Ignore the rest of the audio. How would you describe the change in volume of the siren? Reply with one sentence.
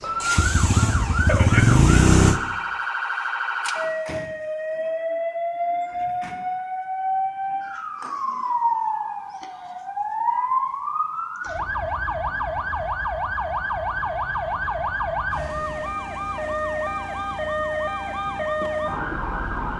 The volume of the siren stays about the same.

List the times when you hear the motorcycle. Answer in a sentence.
The motorcycle can be heard from 0.0 to 2.4 s.